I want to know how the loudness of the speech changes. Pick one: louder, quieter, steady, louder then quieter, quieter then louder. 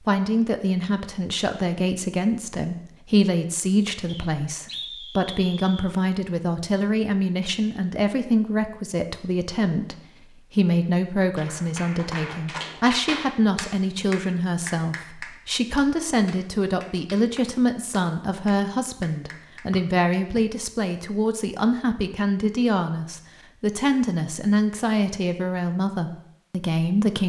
steady.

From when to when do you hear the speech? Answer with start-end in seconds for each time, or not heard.
0.0-27.2.